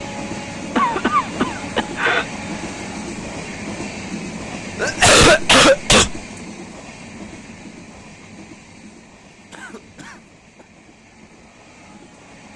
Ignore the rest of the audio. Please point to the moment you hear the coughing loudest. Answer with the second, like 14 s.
5 s.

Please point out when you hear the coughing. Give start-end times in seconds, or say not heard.
0.8-2.2, 4.8-6.2, 9.5-10.7.